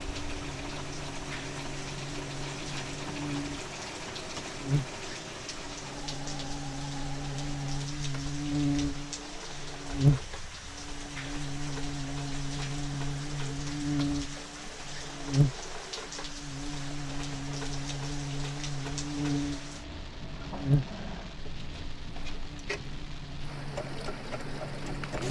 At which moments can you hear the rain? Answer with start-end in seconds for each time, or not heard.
0.0-25.2.